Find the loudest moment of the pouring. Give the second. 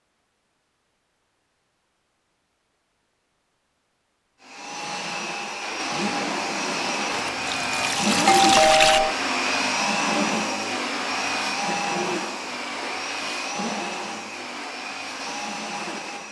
9 s.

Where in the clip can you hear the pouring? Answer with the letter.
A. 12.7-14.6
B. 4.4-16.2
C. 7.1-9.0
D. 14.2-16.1
C.